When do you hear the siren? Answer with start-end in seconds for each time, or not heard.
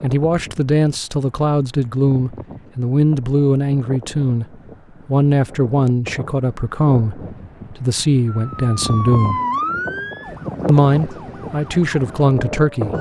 8.2-12.9.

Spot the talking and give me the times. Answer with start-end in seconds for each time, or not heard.
0.0-4.5, 5.0-9.4, 10.7-12.9.